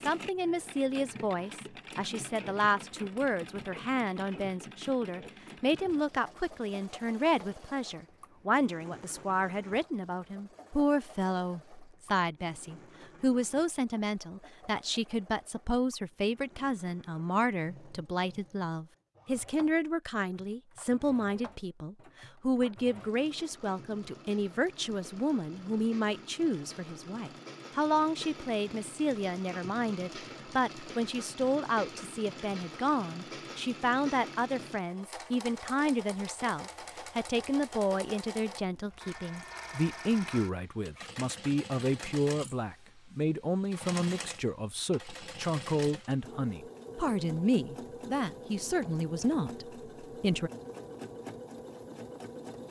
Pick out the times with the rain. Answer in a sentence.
The rain can't be heard in this clip.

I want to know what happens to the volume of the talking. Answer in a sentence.
The loudness of the talking stays about the same.